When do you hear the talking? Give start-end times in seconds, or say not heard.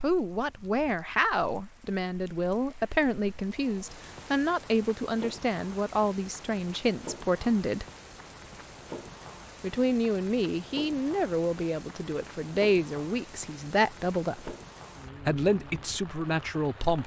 0.0-7.8, 9.6-14.6, 15.2-17.0.